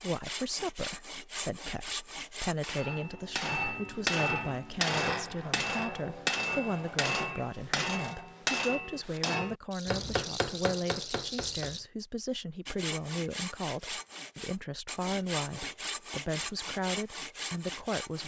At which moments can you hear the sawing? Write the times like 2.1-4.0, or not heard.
0.0-2.9, 12.7-18.2.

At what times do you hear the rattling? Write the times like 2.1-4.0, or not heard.
9.7-11.8.